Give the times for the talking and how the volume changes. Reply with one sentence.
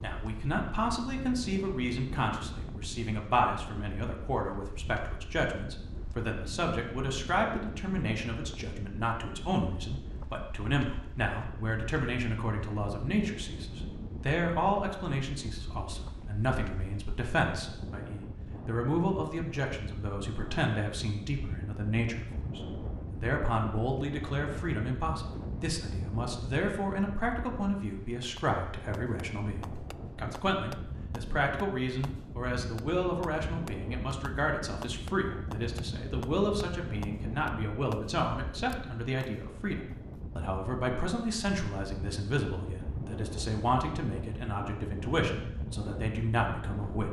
The talking can be heard from 0.0 to 47.0 s, at a steady volume.